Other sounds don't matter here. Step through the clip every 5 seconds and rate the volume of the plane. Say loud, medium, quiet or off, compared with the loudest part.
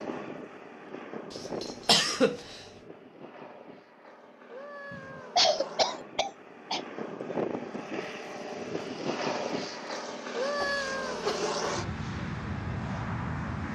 medium, loud, loud.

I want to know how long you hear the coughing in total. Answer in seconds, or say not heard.
4 s.